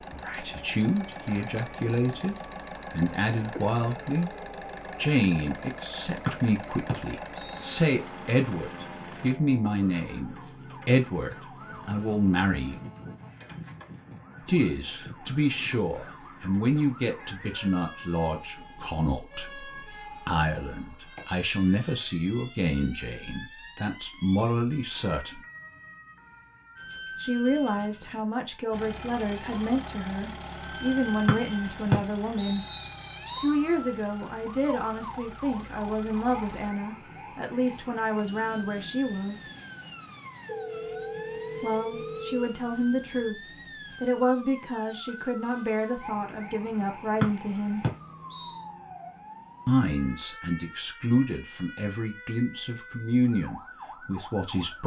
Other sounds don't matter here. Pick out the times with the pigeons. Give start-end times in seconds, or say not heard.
not heard.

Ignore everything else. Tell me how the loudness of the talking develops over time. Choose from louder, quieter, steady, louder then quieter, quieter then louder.
steady.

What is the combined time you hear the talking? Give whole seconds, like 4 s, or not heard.
47 s.